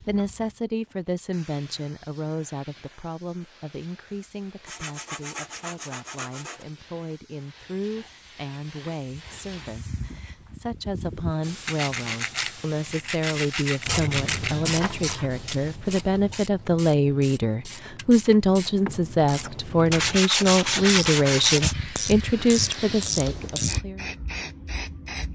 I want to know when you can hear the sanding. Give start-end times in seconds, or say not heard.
4.7-6.7, 11.7-14.6, 19.9-21.8.